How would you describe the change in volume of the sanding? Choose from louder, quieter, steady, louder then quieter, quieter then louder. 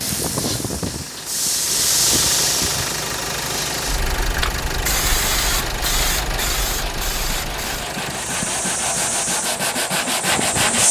louder.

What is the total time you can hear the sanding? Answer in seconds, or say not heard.
6 s.